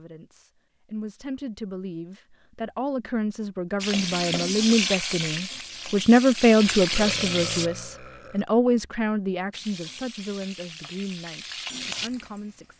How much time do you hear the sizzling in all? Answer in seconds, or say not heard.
7 s.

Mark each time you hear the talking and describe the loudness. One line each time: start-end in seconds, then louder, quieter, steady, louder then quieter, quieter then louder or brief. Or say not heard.
0.0-12.7 louder then quieter.